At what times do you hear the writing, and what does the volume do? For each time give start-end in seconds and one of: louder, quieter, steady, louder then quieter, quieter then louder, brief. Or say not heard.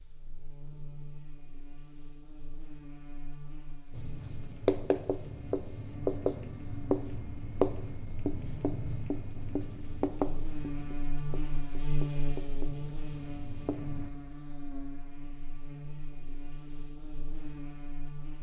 3.9-14.1 quieter.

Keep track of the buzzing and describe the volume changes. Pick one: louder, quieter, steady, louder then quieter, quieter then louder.
louder then quieter.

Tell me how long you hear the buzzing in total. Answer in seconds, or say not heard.
18 s.